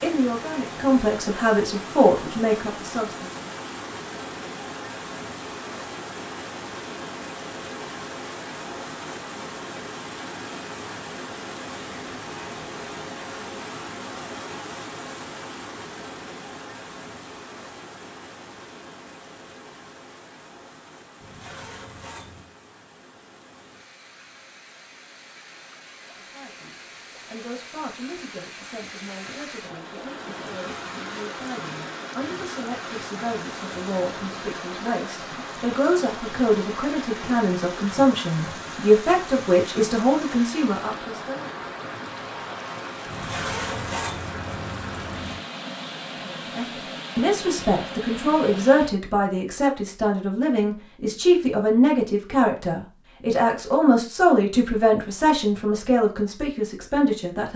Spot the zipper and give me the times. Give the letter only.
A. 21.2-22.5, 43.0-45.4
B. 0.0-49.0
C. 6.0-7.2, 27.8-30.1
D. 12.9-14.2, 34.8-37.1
A.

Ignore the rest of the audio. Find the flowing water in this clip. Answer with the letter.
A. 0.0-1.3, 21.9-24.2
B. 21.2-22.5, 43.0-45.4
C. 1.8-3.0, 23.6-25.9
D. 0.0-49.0
D.